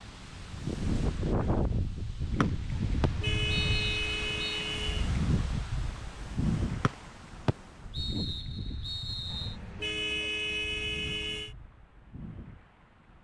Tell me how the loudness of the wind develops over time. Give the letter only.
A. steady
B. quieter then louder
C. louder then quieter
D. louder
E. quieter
E.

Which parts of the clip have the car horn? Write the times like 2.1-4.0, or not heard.
2.7-5.1, 9.3-11.6.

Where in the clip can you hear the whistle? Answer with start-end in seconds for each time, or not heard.
2.4-4.7, 6.8-9.6.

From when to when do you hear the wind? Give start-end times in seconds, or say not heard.
0.0-13.2.